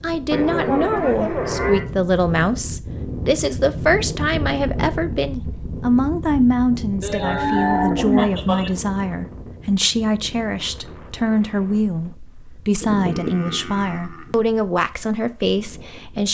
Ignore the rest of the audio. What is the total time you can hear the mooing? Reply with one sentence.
The mooing can be heard for 5 seconds in total.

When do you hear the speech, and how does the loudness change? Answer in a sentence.
You can hear the speech from 0.0 to 16.2 s, at a steady volume.